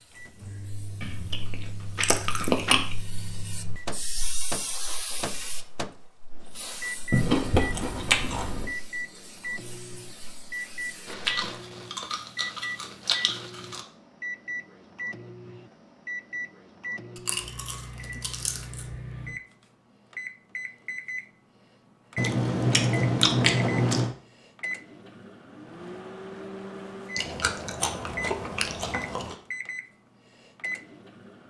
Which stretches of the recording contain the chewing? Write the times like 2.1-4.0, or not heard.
1.0-3.0, 7.1-8.8, 11.1-13.8, 17.1-18.9, 22.1-24.1, 27.1-29.4.